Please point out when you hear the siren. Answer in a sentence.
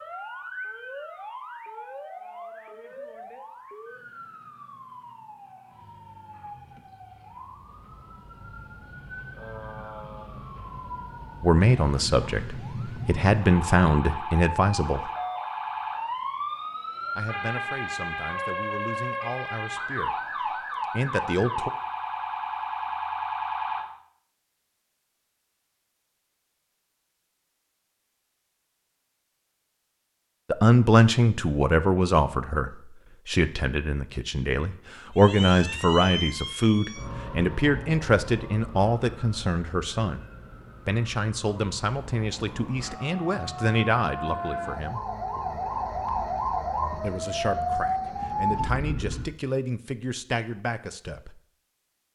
You can hear the siren from 0.0 to 24.0 s and from 35.1 to 49.4 s.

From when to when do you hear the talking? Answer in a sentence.
The talking can be heard from 11.4 to 15.1 s, from 17.1 to 20.1 s, from 20.9 to 21.7 s, from 30.5 to 40.2 s, from 40.9 to 45.0 s and from 47.0 to 51.4 s.